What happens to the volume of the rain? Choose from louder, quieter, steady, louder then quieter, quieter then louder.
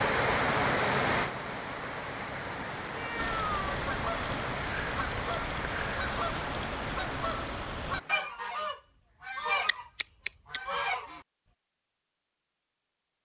quieter.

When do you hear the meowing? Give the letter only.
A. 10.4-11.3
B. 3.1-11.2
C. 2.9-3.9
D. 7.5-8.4
C.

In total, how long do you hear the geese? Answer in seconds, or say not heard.
8 s.